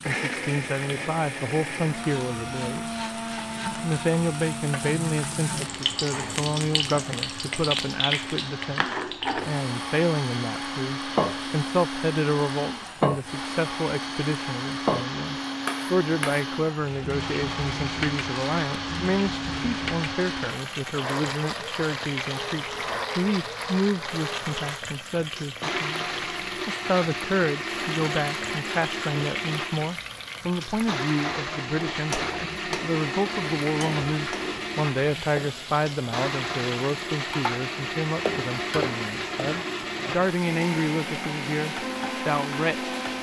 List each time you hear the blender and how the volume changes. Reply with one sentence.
The blender can be heard from 0.0 to 43.1 s, at a steady volume.